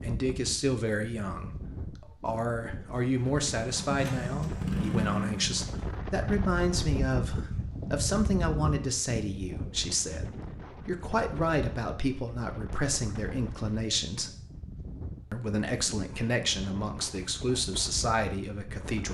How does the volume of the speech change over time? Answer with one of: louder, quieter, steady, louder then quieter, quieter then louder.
steady.